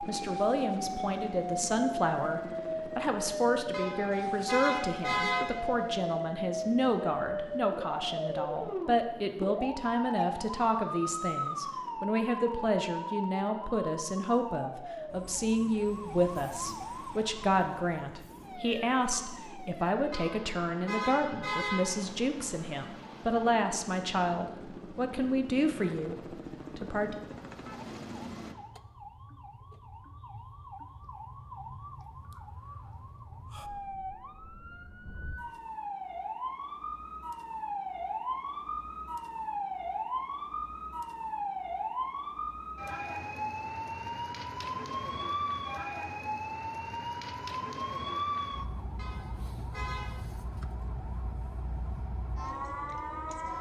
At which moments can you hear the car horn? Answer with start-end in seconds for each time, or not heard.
3.7-5.5, 20.1-21.9, 49.0-50.2.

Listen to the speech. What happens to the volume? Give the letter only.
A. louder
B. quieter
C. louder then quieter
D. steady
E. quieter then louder
D.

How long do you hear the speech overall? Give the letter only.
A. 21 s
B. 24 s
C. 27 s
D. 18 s
C.